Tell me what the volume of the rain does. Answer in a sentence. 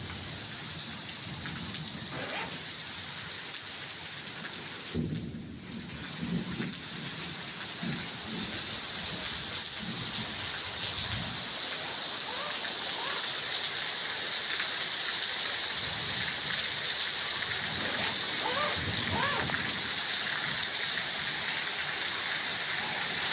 The volume of the rain goes up.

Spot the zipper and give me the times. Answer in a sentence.
The zipper can be heard from 2.1 to 2.7 s, from 11.6 to 13.2 s and from 17.8 to 19.6 s.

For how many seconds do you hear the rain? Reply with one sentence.
The rain can be heard for 23 seconds in total.